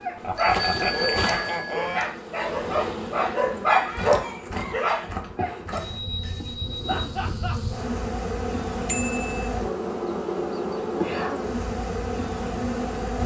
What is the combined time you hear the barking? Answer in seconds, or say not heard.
6 s.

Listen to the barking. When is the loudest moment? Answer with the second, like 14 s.
4 s.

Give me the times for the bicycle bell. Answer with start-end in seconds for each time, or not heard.
0.3-2.0, 5.0-6.8, 8.8-9.5.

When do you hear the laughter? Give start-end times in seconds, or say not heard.
0.2-1.1, 6.8-7.5.